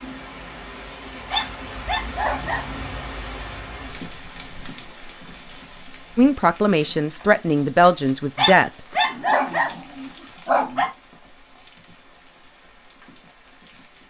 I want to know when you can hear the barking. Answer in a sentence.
The barking can be heard from 1.3 to 2.8 s and from 8.3 to 10.9 s.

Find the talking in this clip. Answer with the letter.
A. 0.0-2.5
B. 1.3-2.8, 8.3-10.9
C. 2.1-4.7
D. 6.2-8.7
D.